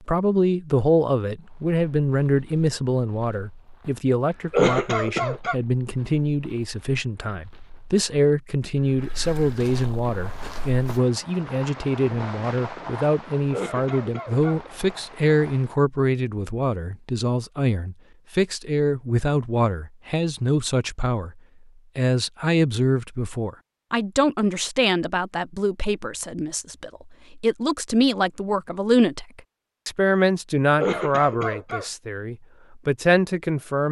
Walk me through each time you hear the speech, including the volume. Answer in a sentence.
You can hear the speech from 0.1 to 33.8 s, at a steady volume.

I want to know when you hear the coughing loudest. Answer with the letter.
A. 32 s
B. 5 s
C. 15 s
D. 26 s
B.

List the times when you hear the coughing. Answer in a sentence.
The coughing can be heard from 4.5 to 5.5 s, from 13.5 to 14.6 s and from 30.8 to 31.9 s.